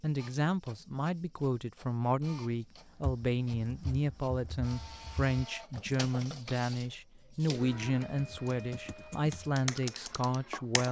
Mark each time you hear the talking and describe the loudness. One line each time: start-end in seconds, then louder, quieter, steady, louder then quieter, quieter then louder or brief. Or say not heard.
0.0-10.8 steady.